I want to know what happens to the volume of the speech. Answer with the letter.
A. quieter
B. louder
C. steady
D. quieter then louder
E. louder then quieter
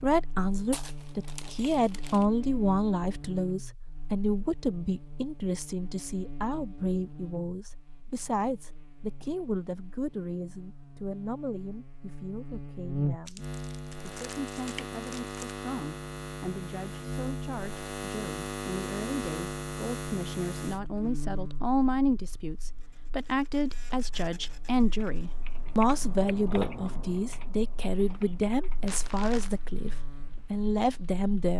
D.